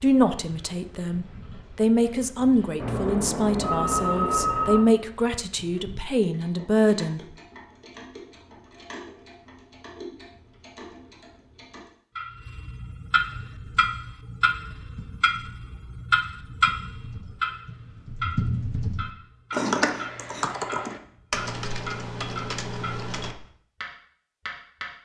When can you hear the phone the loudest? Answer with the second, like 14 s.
4 s.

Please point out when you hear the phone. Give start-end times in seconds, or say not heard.
2.8-4.8.